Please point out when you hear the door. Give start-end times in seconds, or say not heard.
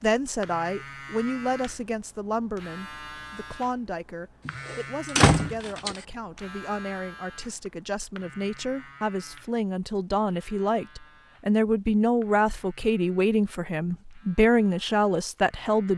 4.5-6.0.